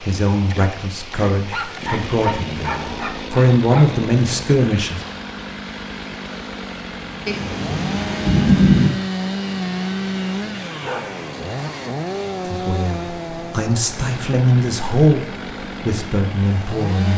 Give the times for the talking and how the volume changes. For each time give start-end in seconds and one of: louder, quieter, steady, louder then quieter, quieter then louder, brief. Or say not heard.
0.0-5.0 louder
12.4-17.1 louder then quieter.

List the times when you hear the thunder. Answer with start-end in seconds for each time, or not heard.
7.2-8.9.